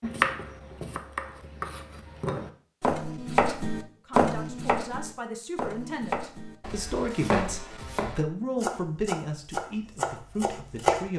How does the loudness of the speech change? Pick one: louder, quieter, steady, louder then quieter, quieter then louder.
louder then quieter.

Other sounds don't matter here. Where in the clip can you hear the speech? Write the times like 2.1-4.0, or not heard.
4.0-11.1.